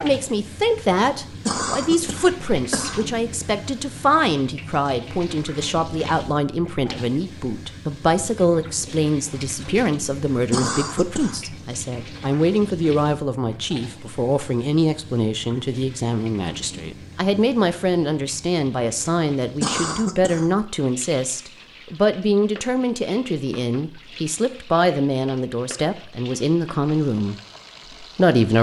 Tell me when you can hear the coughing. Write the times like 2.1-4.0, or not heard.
1.4-3.0, 10.5-11.4, 19.6-20.5.